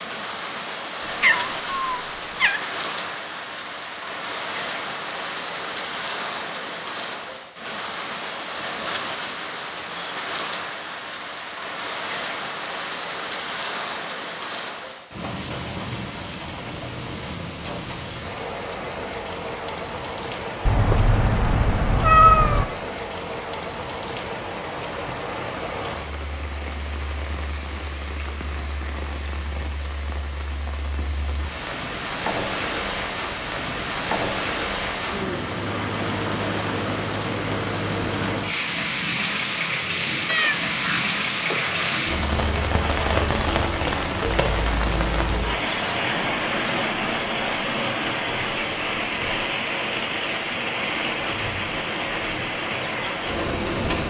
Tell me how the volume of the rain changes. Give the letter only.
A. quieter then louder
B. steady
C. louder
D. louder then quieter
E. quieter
C.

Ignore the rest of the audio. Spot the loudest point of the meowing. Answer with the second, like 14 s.
22 s.